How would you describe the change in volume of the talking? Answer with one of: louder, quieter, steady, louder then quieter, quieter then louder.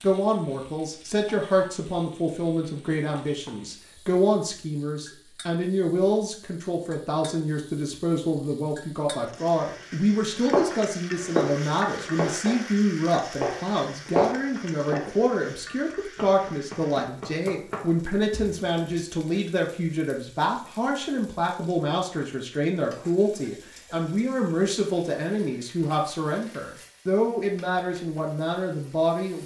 steady.